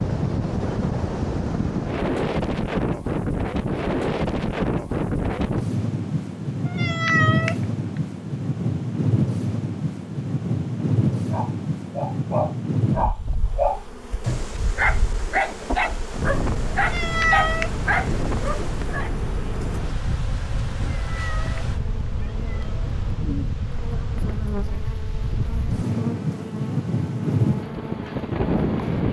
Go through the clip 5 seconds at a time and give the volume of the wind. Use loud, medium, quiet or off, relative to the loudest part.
loud, loud, loud, medium, medium, loud.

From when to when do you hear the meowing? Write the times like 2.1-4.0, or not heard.
6.7-7.5, 16.8-17.7, 20.9-22.9.